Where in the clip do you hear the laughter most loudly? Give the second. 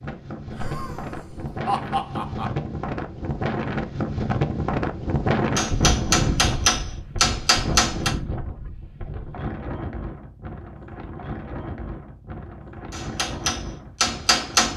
2 s.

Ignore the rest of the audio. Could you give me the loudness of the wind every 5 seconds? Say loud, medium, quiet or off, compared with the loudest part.
loud, loud, medium.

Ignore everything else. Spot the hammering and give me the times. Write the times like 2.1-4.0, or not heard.
5.5-8.1, 12.9-14.7.